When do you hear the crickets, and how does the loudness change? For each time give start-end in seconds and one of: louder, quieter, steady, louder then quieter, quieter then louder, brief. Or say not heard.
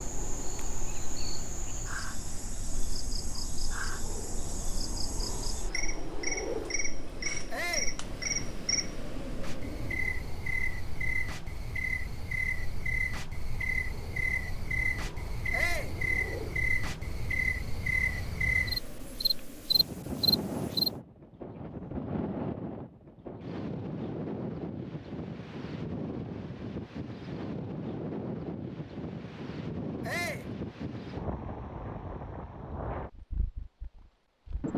0.0-20.9 louder.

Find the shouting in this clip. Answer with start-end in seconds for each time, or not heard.
7.5-8.0, 15.5-15.9, 30.0-30.5.